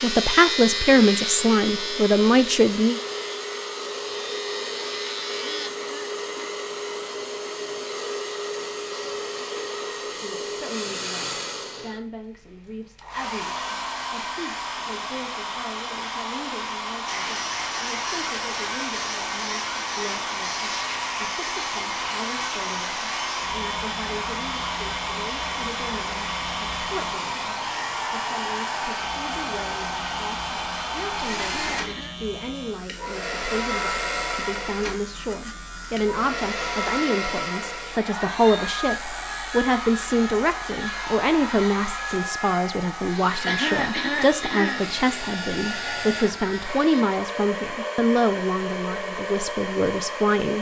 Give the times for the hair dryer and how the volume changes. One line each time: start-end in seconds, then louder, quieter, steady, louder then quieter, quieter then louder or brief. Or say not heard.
0.0-50.5 steady.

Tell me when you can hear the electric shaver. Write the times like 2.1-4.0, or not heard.
0.0-5.7, 17.1-47.0.